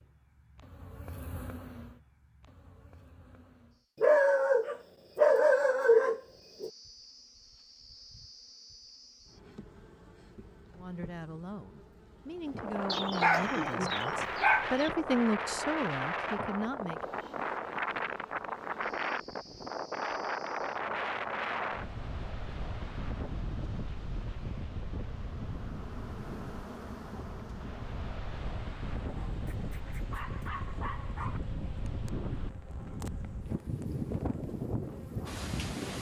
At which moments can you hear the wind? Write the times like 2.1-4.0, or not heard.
12.3-35.9.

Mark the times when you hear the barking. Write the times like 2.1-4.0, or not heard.
4.0-6.7, 12.9-14.9, 29.4-31.4.